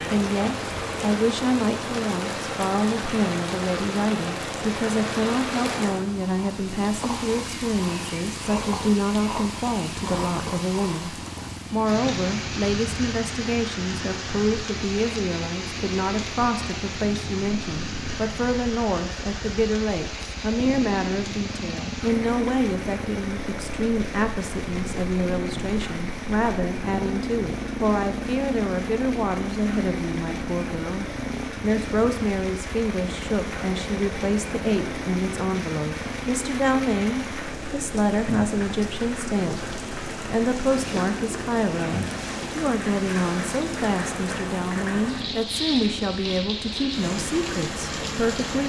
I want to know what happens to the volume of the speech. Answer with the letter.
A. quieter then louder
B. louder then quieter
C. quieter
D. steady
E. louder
D.